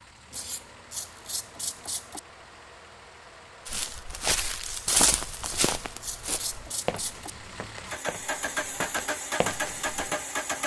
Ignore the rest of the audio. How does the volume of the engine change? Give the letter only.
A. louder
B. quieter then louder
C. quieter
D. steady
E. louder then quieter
A.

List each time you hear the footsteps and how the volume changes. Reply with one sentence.
You can hear the footsteps from 3.6 to 10.2 s, getting quieter then louder.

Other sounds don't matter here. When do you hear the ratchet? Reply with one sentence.
The ratchet can be heard from 0.3 to 2.2 s and from 5.4 to 7.3 s.